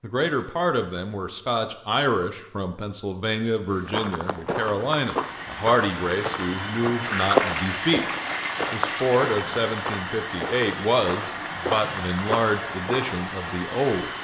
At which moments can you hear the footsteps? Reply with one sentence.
The footsteps can be heard from 3.7 to 13.2 s.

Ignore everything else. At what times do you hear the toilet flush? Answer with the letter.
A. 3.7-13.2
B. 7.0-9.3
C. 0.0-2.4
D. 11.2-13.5
B.